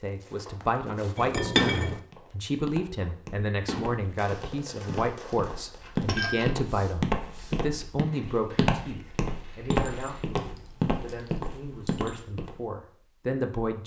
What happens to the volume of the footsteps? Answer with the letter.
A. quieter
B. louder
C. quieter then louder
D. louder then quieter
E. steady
B.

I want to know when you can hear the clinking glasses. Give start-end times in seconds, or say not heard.
1.1-2.0, 5.8-6.5, 9.7-12.2.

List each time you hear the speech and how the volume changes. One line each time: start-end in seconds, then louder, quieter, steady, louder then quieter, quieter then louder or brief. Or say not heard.
0.0-13.8 quieter.